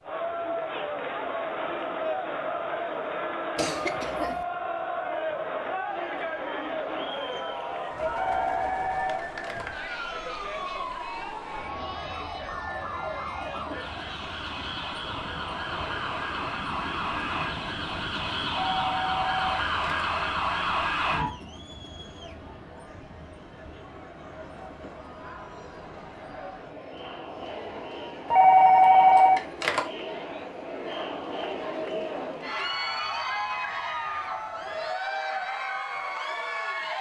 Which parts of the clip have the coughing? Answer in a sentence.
The coughing can be heard from 3.5 to 4.5 s.